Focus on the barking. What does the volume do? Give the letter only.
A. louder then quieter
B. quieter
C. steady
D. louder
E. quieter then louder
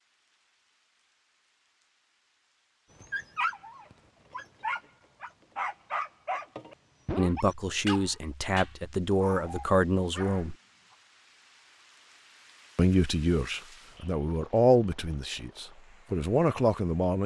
B.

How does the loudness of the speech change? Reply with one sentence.
The volume of the speech stays about the same.